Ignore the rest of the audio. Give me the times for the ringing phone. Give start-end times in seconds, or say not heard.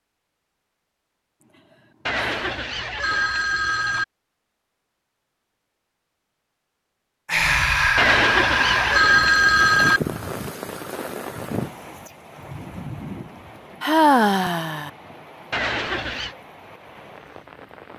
2.0-4.0, 8.0-10.0, 15.5-16.4.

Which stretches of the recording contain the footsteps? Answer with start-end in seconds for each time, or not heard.
not heard.